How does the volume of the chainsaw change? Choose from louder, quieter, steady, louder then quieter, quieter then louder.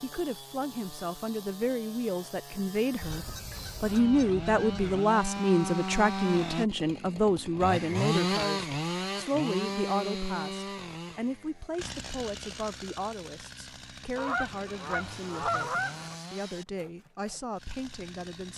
louder then quieter.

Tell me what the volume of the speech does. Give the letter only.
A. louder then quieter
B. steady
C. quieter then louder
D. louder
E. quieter
A.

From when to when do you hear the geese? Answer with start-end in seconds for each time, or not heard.
3.0-5.0, 14.2-16.1.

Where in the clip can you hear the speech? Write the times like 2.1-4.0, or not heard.
0.0-18.5.